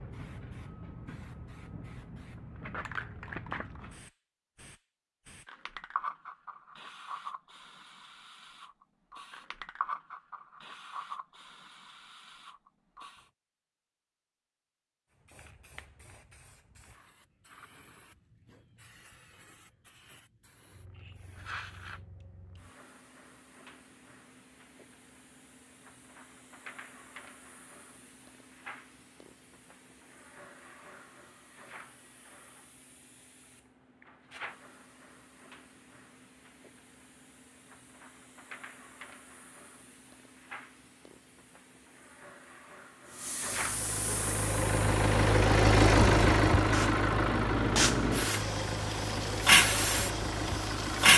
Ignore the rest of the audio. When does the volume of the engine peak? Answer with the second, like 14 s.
46 s.